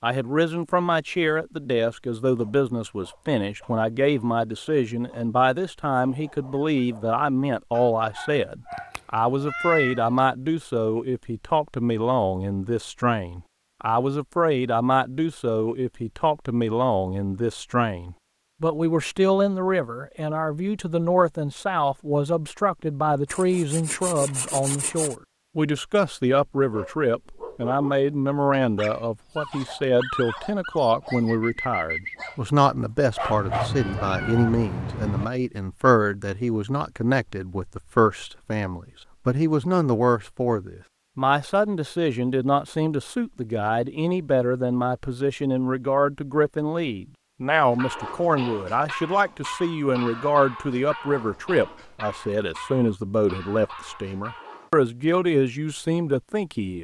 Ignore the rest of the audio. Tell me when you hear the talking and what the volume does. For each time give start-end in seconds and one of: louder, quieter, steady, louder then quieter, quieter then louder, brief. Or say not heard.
0.0-56.8 steady.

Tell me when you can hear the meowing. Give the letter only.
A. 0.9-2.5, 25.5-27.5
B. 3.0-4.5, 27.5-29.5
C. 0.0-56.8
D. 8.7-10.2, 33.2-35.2
D.